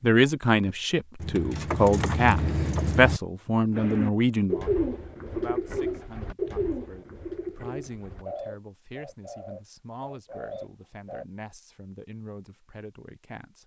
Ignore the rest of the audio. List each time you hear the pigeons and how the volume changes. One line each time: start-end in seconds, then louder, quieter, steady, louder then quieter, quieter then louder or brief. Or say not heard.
3.8-11.2 quieter.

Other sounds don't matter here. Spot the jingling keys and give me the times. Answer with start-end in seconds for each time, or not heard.
1.2-3.2.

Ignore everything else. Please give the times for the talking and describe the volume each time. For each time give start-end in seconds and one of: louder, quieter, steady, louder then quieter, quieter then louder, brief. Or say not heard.
0.0-13.6 quieter.